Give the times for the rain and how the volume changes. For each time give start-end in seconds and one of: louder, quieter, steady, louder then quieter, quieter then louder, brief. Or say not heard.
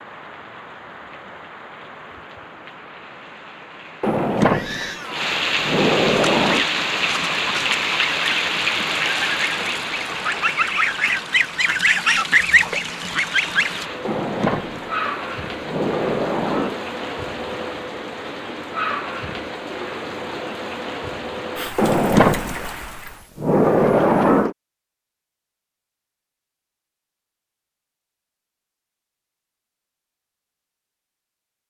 0.0-23.2 louder then quieter.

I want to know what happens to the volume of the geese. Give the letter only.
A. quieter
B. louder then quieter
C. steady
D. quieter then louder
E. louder
E.